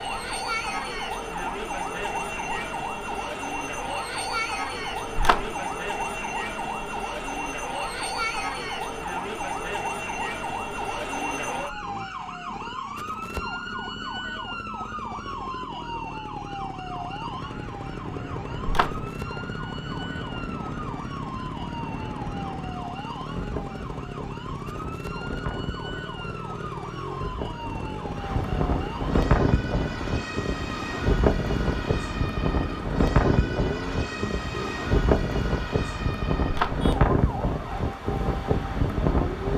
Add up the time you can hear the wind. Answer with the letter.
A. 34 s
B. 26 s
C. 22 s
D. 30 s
C.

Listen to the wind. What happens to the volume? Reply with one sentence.
The volume of the wind goes up.